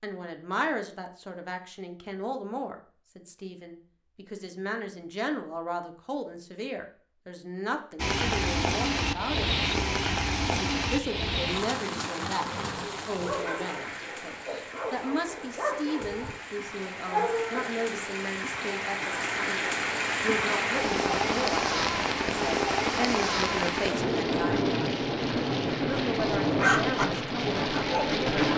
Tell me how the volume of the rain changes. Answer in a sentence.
The loudness of the rain goes down, then up.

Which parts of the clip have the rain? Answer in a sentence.
The rain can be heard from 8.0 to 28.5 s.